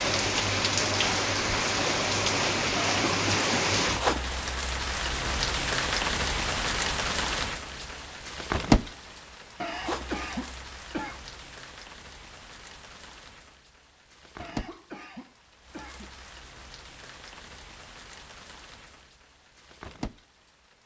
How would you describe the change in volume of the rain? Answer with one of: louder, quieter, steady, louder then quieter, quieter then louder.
quieter.